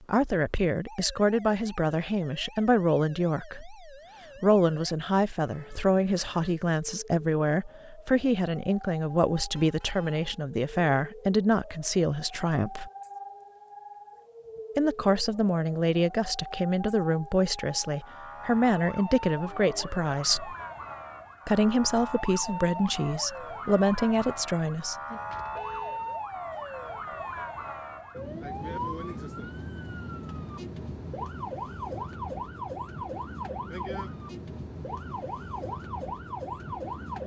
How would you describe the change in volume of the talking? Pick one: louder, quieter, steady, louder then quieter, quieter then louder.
steady.